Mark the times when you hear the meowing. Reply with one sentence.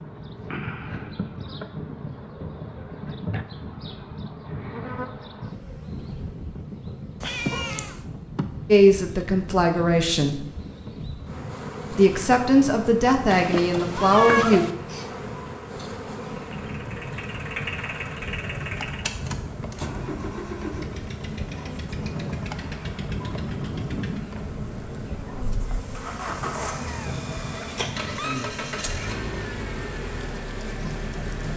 You can hear the meowing from 7.2 to 8.0 s, from 13.2 to 14.7 s and from 26.9 to 28.4 s.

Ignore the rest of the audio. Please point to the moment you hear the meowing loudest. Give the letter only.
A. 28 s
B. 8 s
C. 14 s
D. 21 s
C.